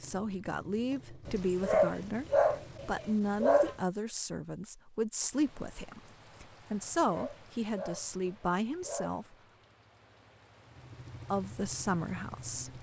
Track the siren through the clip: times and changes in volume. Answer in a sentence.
You can't hear the siren here.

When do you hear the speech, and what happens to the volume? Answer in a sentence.
You can hear the speech from 0.0 to 9.3 s, at a steady volume; and briefly from 11.3 to 12.7 s.